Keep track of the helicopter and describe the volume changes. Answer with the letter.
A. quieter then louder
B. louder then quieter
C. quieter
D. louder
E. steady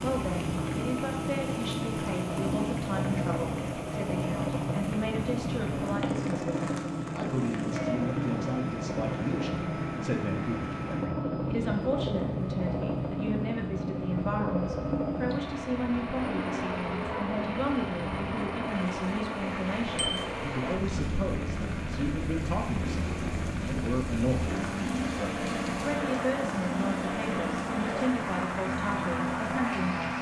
E.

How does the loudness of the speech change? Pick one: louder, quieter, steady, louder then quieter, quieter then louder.
steady.